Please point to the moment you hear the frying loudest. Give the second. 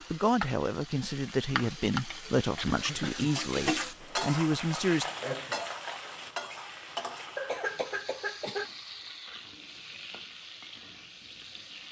4 s.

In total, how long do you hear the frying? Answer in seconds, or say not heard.
12 s.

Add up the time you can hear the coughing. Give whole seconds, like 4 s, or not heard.
2 s.